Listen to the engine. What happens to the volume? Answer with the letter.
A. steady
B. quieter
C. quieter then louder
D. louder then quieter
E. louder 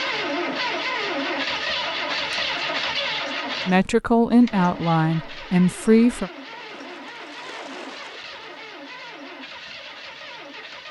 B.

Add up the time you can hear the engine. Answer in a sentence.
The engine can be heard for 11 seconds in total.